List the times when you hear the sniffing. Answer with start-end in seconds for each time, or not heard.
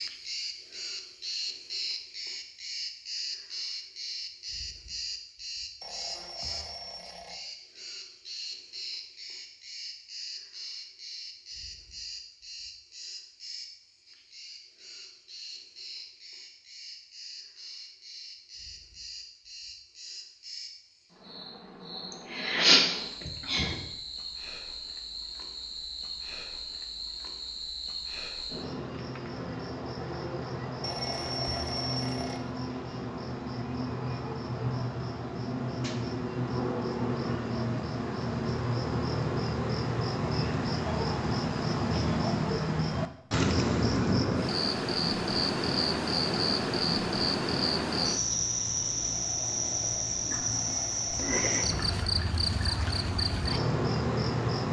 22.3-23.8.